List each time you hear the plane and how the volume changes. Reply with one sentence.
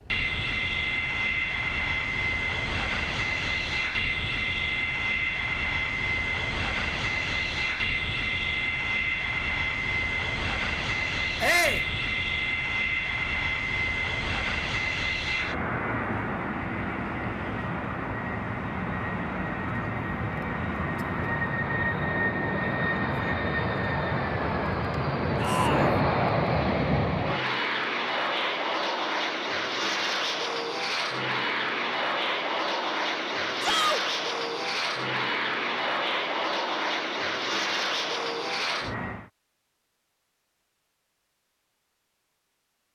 The plane can be heard from 0.0 to 39.3 s, at a steady volume.